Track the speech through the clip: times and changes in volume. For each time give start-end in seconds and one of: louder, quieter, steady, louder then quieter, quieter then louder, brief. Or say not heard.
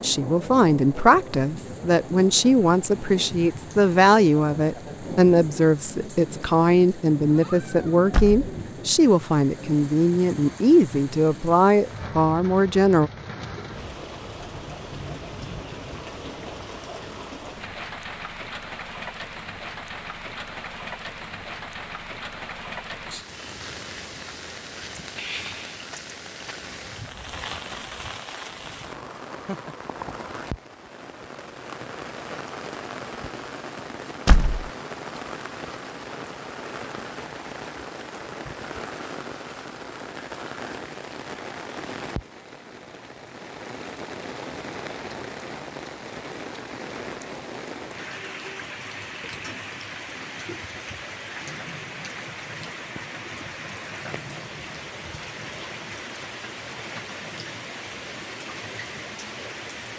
0.0-13.1 steady.